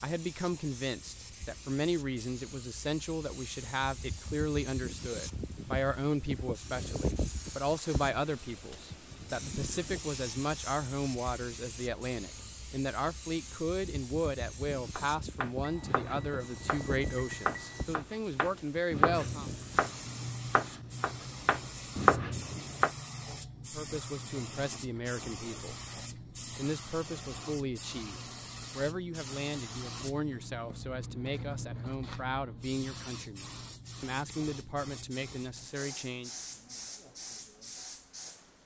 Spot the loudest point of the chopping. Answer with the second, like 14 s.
22 s.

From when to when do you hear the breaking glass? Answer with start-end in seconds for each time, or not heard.
not heard.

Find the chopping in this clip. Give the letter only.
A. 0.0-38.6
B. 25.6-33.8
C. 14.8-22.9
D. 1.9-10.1
C.